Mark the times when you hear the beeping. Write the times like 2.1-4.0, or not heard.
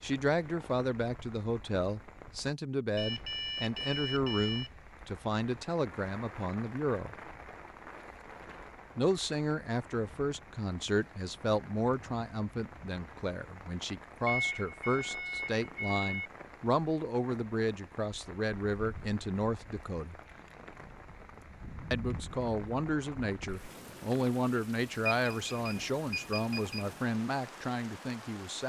3.0-4.7, 14.2-16.3, 25.1-27.0.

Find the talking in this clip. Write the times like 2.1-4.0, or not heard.
0.0-7.2, 8.9-20.1, 21.9-28.6.